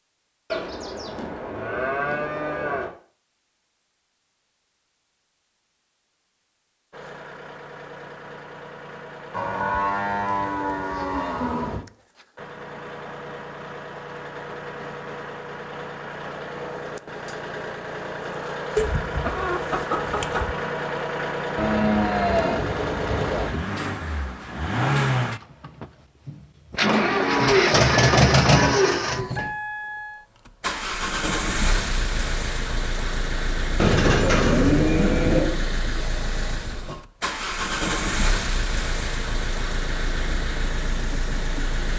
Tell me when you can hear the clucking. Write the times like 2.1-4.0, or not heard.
18.8-20.6.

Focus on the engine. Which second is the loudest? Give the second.
28 s.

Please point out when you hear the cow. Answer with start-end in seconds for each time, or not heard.
0.5-2.9, 9.3-11.8, 21.6-23.6, 26.9-29.5, 33.8-35.5.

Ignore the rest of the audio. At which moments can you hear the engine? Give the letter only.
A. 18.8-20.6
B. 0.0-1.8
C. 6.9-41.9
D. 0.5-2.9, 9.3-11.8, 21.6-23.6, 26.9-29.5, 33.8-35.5
C.